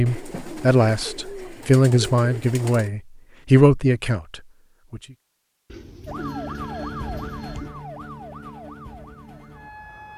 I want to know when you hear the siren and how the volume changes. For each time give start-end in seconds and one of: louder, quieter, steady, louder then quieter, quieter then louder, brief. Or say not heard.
6.0-10.1 quieter.